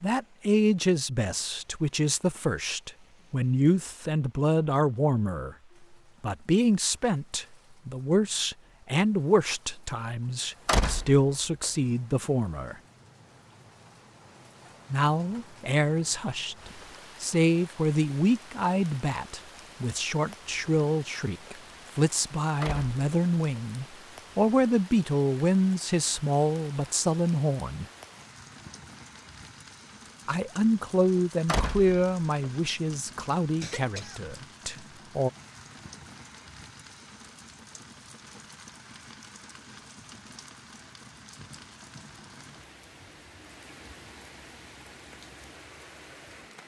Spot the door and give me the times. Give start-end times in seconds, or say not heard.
10.7-11.7, 22.6-23.6, 31.4-32.5.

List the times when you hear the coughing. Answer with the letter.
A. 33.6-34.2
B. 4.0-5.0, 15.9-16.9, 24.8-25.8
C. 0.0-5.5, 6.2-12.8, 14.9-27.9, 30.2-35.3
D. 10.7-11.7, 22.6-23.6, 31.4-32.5
A.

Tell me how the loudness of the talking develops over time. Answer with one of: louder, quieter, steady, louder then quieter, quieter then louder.
steady.